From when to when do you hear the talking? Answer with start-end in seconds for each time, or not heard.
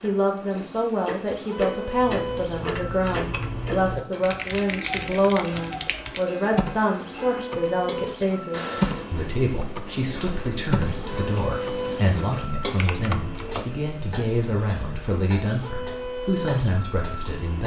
0.0-17.6.